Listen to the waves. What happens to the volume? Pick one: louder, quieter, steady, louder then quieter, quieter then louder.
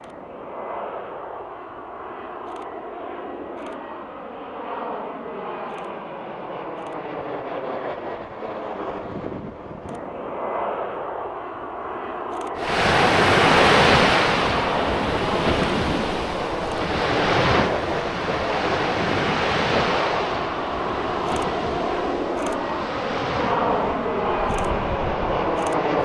quieter.